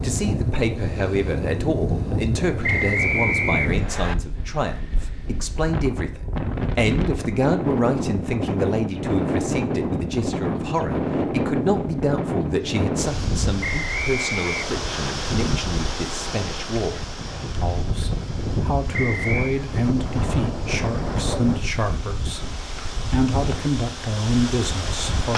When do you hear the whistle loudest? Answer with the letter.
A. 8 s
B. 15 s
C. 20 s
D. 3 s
D.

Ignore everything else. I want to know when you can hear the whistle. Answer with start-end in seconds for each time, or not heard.
2.6-4.2, 13.6-15.2, 18.9-19.6.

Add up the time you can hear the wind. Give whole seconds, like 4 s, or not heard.
25 s.